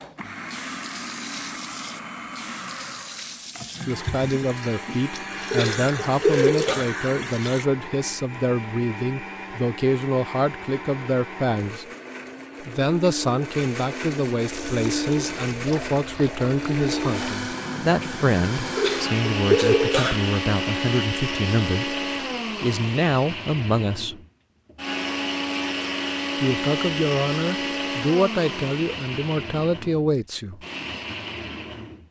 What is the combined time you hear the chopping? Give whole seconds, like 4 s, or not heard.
not heard.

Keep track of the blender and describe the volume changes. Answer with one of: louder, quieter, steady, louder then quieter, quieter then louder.
louder.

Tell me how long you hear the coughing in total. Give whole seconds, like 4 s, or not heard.
3 s.